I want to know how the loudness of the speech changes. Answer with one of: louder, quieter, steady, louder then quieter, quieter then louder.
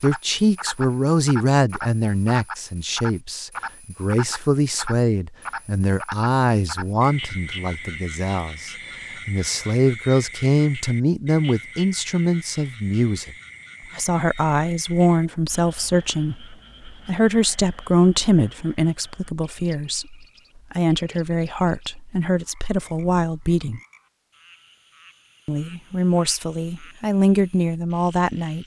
steady.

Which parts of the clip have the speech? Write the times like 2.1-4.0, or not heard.
0.0-13.3, 13.9-23.8, 25.4-28.6.